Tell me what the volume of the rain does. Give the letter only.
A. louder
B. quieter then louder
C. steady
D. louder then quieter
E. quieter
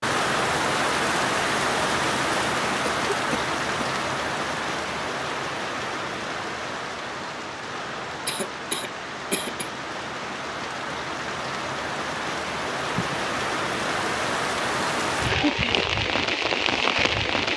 B.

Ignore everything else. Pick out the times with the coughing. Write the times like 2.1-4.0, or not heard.
2.9-3.9, 8.1-9.7, 12.9-13.3.